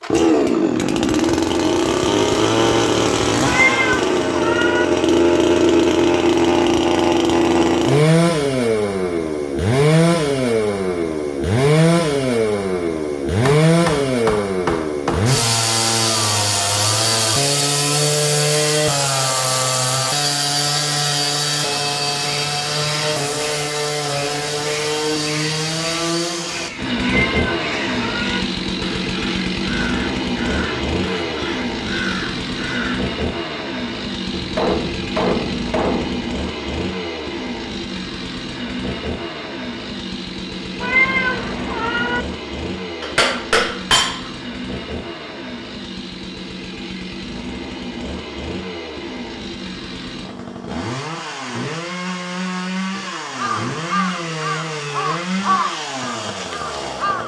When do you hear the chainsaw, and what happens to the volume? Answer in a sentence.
The chainsaw can be heard from 0.0 to 57.2 s, getting quieter.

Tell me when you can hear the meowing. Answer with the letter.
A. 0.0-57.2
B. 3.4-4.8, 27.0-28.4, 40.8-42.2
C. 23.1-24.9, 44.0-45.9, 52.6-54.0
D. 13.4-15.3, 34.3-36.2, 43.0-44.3
B.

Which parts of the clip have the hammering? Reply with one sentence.
The hammering can be heard from 13.4 to 15.3 s, from 34.3 to 36.2 s and from 43.0 to 44.3 s.